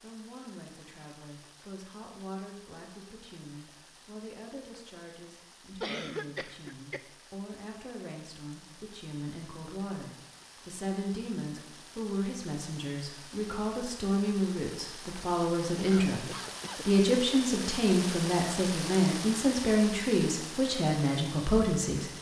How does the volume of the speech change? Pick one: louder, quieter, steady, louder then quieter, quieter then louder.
louder.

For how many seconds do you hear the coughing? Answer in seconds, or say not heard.
2 s.